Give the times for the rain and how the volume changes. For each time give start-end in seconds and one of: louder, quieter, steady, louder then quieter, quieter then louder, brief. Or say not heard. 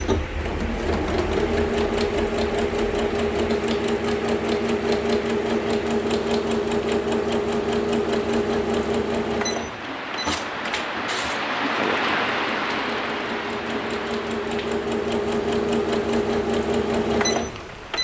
0.0-17.9 louder then quieter.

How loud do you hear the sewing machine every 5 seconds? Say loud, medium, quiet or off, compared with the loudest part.
loud, loud, medium, loud.